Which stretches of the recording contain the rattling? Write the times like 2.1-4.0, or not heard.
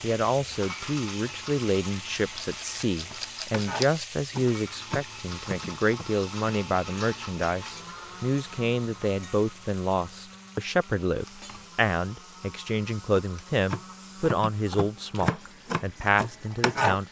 2.1-4.0.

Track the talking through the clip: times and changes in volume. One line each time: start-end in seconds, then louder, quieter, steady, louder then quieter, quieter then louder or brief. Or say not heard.
0.0-17.0 steady.